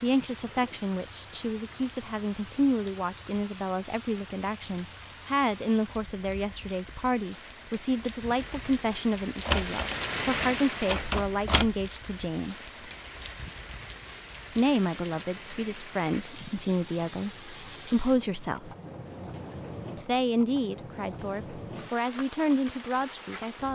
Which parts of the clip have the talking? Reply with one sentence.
The talking can be heard from 0.0 to 12.9 s, from 14.6 to 18.7 s and from 19.9 to 23.7 s.